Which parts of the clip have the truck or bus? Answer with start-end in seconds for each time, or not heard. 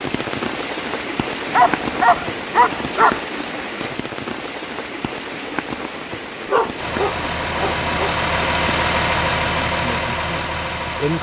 6.8-11.1.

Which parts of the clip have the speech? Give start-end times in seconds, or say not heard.
9.5-11.1.